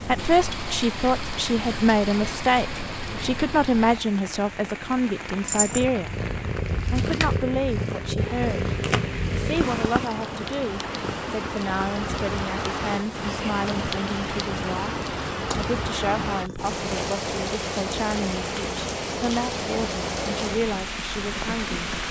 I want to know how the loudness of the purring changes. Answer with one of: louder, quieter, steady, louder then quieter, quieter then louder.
quieter.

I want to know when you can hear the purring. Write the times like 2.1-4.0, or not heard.
5.5-22.0.